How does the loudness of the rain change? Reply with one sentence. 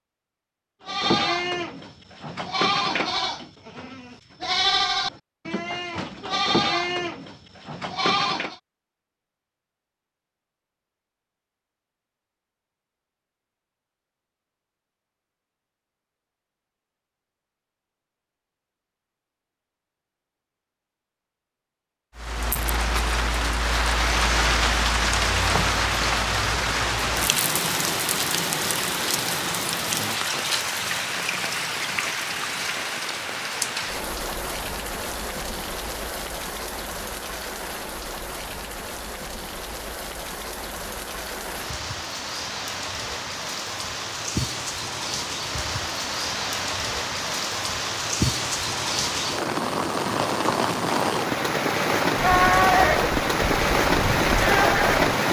The loudness of the rain goes down, then up.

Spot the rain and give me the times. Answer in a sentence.
The rain can be heard from 22.1 to 55.2 s.